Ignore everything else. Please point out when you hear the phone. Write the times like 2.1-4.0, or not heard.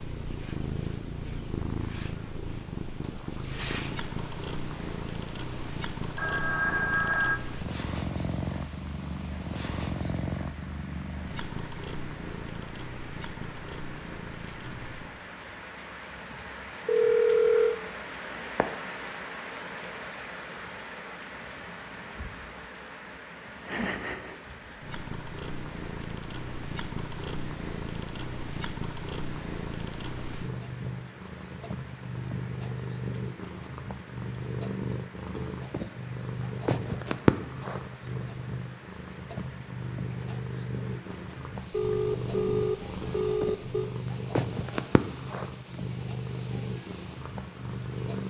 6.2-7.4, 16.9-17.8, 41.7-43.9.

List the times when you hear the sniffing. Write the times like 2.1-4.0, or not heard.
not heard.